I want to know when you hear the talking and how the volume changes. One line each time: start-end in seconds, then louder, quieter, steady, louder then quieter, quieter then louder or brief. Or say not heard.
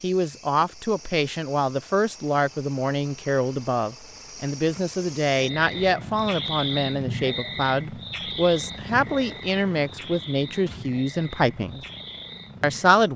0.0-11.8 steady
12.6-13.1 brief.